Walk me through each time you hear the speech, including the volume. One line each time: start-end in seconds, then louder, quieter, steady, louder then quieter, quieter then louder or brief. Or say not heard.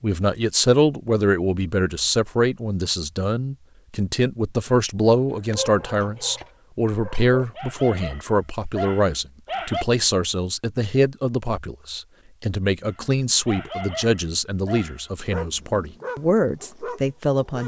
0.0-17.6 steady.